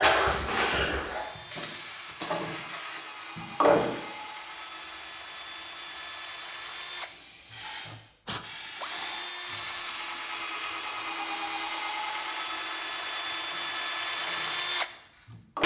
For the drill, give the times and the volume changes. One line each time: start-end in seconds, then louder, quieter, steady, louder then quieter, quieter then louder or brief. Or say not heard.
0.0-15.6 louder.